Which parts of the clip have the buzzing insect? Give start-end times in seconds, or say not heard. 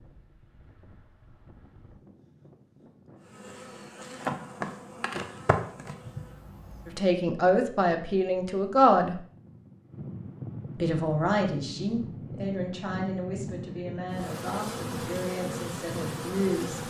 3.2-7.0, 14.1-16.8.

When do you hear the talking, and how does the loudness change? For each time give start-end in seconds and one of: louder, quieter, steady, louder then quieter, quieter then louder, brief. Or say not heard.
6.8-9.2 brief
10.8-16.8 quieter.